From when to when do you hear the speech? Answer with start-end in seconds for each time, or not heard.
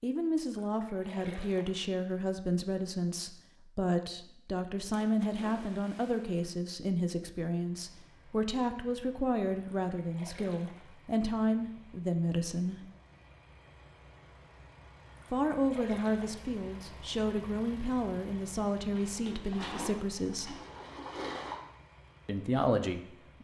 0.0-12.8, 15.3-20.6, 22.2-23.4.